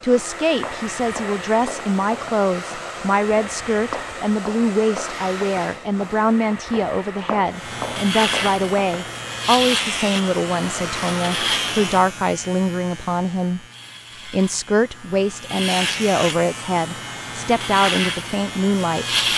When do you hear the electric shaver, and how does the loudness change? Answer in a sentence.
The electric shaver can be heard from 7.5 to 19.3 s, getting quieter then louder.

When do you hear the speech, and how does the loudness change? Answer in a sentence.
You can hear the speech from 0.0 to 13.7 s, at a steady volume; and from 14.2 to 19.1 s, at a steady volume.